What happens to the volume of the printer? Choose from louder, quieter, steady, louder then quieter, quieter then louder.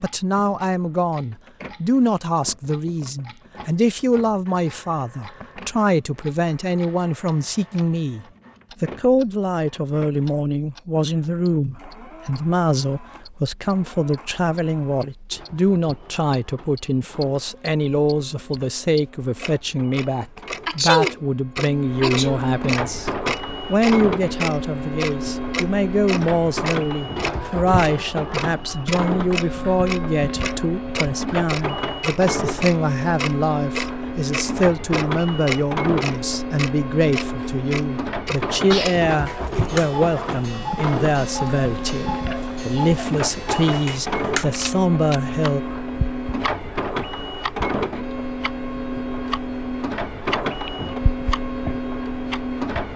louder.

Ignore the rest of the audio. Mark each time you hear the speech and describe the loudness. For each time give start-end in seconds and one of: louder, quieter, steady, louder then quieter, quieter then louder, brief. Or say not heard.
0.0-45.6 steady.